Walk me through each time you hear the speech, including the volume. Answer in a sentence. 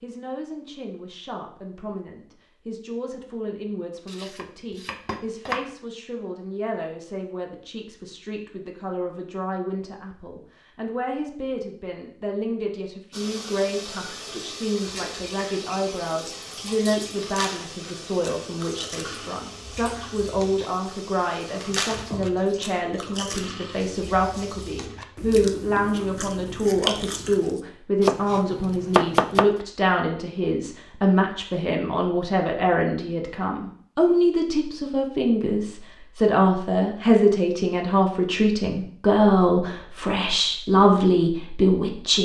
You can hear the speech from 0.0 to 42.2 s, getting louder.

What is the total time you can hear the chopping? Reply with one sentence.
The chopping can be heard for 3 seconds in total.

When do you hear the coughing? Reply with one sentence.
The coughing can't be heard in this clip.